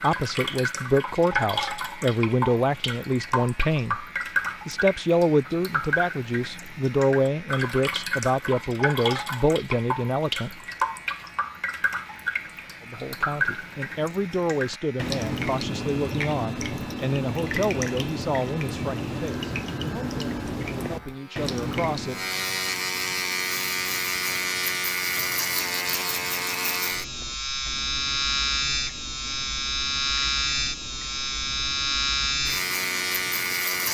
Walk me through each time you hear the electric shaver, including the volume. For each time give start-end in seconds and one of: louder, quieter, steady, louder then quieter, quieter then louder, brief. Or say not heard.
0.1-33.9 louder.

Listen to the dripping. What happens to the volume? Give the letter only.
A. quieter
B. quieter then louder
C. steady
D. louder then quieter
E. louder
A.